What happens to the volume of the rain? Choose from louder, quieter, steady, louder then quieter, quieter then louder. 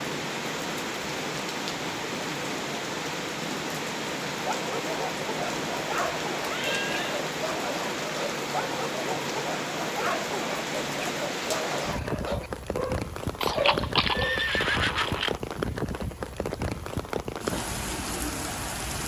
steady.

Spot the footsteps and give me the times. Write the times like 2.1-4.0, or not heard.
not heard.